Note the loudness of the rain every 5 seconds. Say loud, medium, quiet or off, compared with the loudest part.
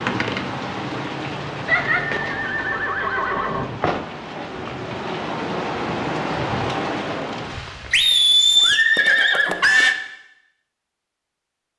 loud, loud, off.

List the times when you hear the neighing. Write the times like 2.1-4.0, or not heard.
1.6-3.7, 7.9-9.9.